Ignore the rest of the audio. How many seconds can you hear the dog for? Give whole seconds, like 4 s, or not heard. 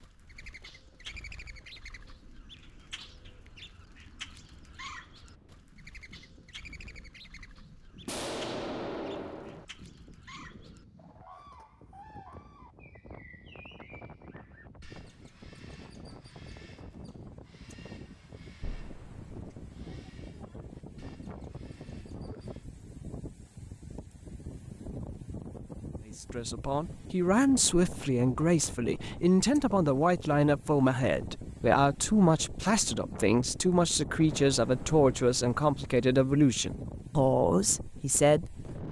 not heard.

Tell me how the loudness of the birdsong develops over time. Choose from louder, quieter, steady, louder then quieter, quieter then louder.
quieter.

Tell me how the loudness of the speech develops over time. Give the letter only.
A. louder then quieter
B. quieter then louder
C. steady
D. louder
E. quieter
C.